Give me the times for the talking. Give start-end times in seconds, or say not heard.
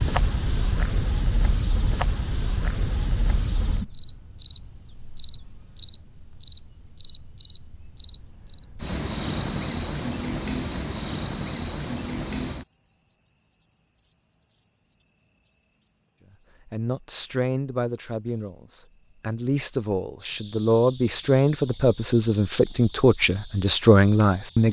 16.6-24.6.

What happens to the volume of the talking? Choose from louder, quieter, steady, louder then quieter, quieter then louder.
louder.